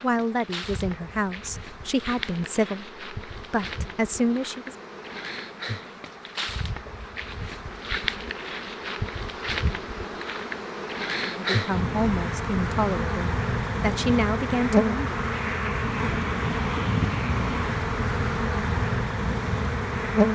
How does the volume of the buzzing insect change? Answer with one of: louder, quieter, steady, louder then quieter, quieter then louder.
louder.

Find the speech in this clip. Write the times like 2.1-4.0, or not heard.
0.0-4.8, 11.2-15.1.